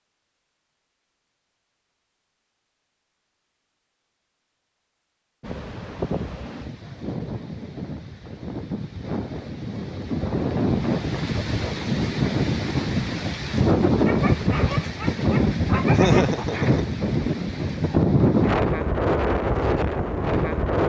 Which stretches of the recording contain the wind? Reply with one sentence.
You can hear the wind from 5.4 to 20.8 s.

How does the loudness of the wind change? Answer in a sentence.
The volume of the wind goes up.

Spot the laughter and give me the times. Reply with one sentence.
You can hear the laughter from 15.9 to 16.9 s.